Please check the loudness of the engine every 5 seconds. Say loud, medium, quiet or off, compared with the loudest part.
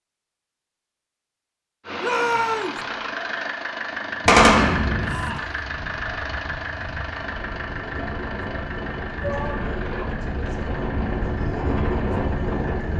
loud, loud, medium.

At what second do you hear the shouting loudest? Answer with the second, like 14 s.
2 s.